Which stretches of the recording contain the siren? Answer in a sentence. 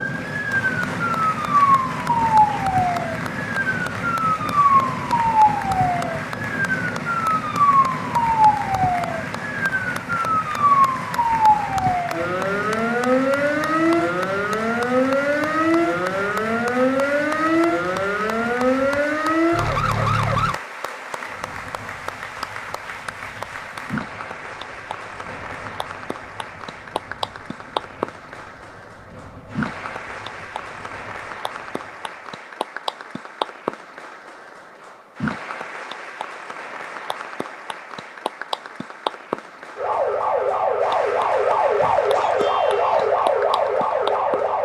The siren can be heard from 0.0 to 20.6 s and from 39.8 to 44.6 s.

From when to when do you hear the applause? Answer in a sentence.
You can hear the applause from 0.0 to 44.6 s.